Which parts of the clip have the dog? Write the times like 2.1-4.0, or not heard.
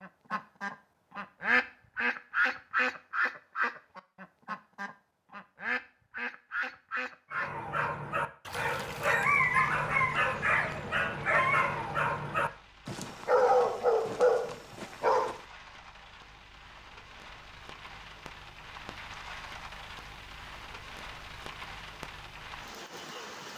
7.3-15.4.